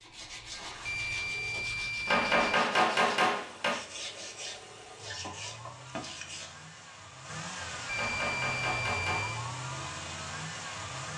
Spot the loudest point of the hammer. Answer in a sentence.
The volume of the hammer peaks at 3 seconds.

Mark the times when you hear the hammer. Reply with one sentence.
You can hear the hammer from 2.0 to 3.8 s and from 8.0 to 9.3 s.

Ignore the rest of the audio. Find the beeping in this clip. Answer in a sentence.
You can hear the beeping from 0.8 to 2.5 s and from 7.8 to 9.4 s.